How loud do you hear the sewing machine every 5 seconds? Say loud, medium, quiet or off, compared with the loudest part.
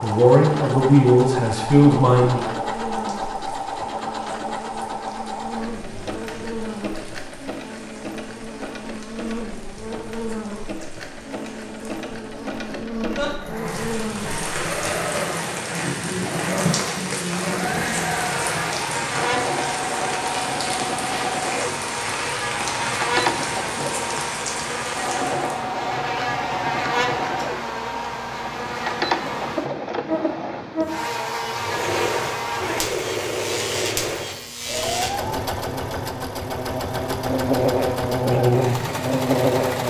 loud, medium, medium, loud, loud, loud, loud, loud.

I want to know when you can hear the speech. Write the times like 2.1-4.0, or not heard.
0.0-2.5.